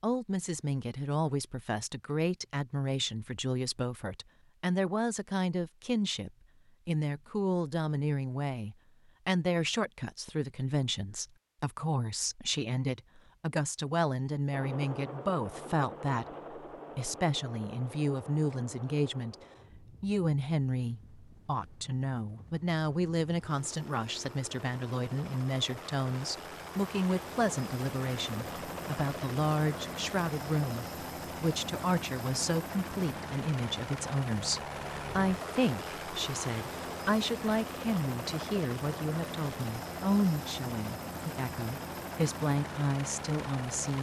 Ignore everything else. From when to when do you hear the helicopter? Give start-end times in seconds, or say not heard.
14.5-43.9.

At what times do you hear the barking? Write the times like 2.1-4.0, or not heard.
not heard.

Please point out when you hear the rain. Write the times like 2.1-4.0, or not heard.
not heard.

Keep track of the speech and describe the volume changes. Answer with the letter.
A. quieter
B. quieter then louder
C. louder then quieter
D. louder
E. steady
E.